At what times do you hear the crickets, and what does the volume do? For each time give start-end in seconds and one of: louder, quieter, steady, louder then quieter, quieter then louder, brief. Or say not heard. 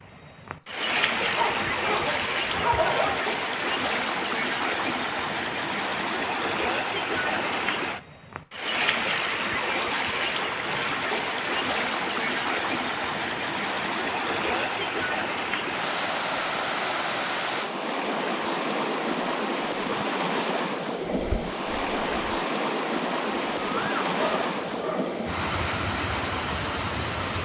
0.0-22.4 steady.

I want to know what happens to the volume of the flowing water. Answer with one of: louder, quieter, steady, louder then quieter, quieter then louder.
steady.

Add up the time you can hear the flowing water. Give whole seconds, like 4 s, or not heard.
27 s.